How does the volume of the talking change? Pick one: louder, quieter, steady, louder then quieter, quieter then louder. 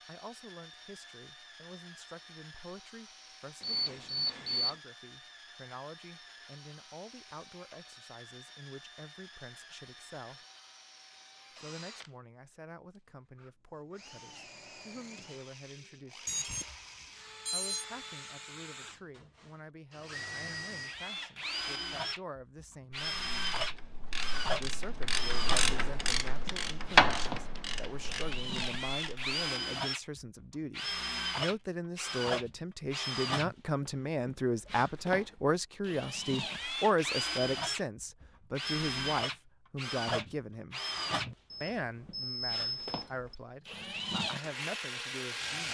louder.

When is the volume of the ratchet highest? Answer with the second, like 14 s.
27 s.